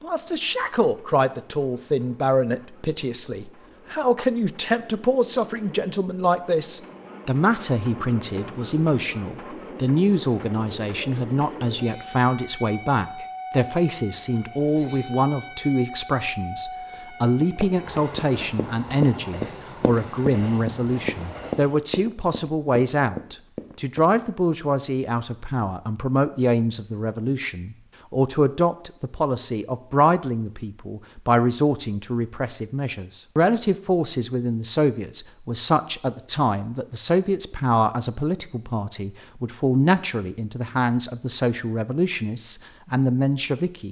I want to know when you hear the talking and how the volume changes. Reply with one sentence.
You can hear the talking from 0.0 to 43.8 s, at a steady volume.